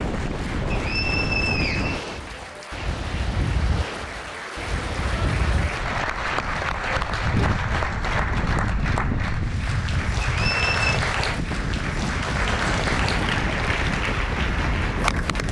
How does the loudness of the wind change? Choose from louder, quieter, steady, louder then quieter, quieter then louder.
steady.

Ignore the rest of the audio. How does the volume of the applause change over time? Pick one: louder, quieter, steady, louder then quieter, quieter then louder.
louder.